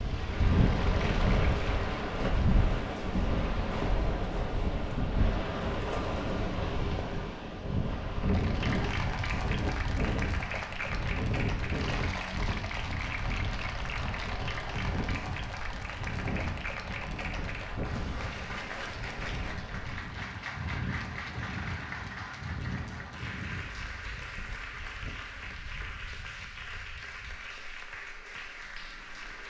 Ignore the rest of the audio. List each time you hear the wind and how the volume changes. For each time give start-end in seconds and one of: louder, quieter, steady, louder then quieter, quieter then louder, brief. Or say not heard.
0.0-29.4 quieter.